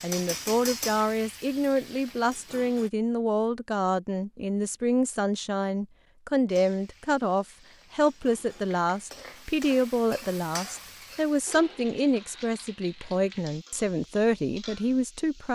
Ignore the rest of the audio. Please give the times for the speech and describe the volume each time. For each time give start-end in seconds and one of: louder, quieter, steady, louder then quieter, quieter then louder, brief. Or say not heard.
0.0-15.4 steady.